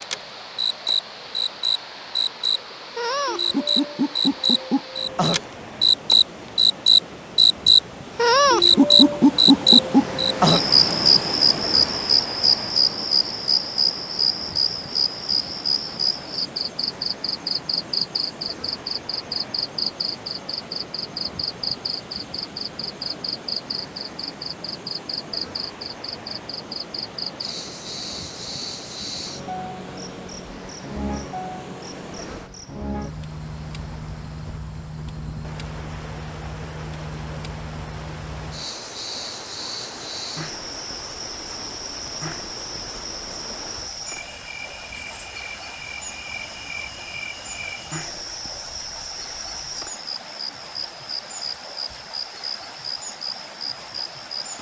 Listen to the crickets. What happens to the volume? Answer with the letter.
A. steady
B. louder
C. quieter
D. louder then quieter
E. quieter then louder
C.